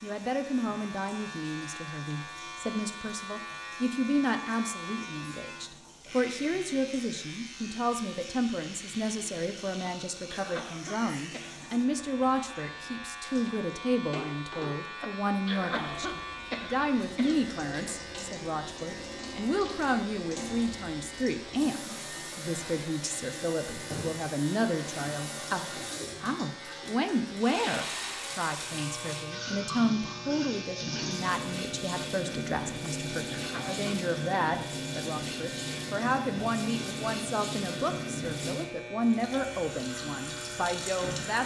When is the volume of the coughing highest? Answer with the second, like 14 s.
16 s.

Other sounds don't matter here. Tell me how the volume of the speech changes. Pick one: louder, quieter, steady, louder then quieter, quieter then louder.
steady.